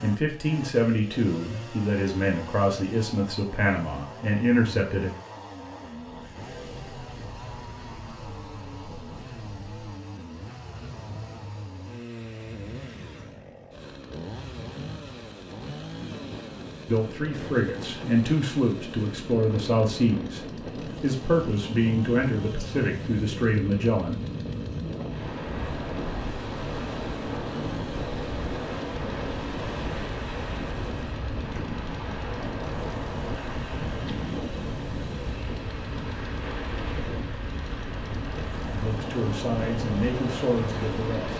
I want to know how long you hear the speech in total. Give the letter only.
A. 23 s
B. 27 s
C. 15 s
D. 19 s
C.